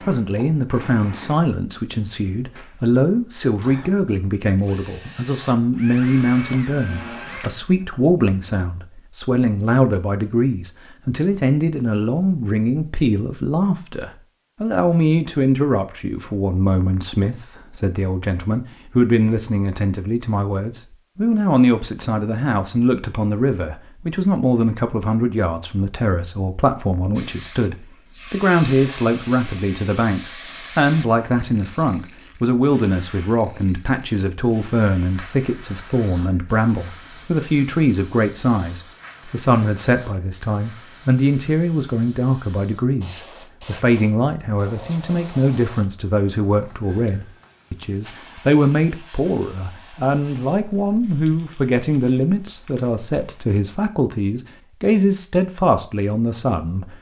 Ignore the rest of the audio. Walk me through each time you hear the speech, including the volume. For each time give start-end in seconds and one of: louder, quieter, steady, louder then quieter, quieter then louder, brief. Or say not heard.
0.0-56.9 steady.